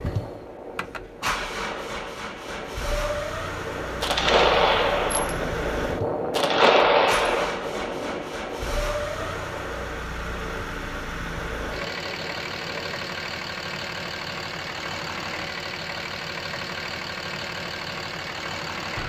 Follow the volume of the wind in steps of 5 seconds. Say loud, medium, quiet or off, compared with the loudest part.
medium, loud, medium, off.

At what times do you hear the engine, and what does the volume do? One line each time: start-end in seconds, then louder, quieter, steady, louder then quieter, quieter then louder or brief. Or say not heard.
0.0-19.0 steady.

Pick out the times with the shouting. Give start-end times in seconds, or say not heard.
not heard.